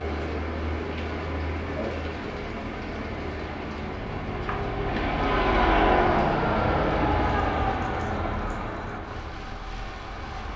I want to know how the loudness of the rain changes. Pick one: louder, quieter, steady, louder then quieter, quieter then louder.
quieter.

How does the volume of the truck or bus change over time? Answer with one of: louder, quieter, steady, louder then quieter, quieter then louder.
louder then quieter.